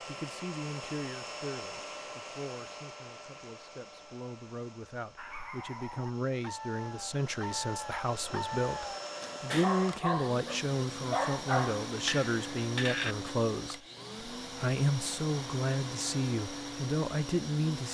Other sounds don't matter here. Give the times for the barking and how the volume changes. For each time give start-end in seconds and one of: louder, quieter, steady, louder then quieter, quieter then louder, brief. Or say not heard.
5.2-13.3 louder.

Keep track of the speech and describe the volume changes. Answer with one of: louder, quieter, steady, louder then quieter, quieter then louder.
louder.